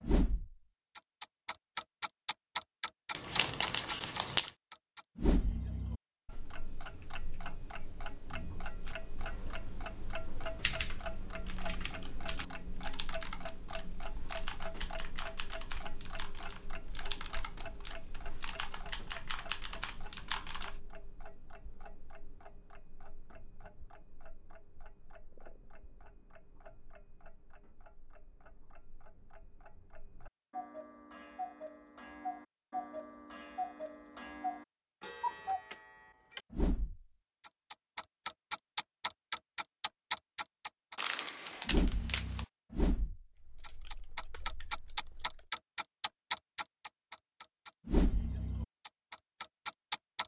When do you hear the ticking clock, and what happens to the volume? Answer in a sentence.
You can hear the ticking clock from 0.0 to 50.2 s, getting quieter then louder.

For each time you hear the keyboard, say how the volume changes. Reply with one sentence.
You can hear the keyboard from 8.8 to 20.8 s, getting louder; and briefly from 43.4 to 45.5 s.